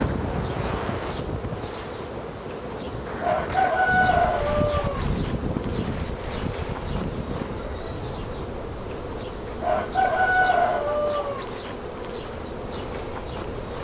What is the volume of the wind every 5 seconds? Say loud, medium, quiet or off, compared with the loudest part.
loud, loud, medium.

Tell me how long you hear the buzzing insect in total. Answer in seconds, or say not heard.
14 s.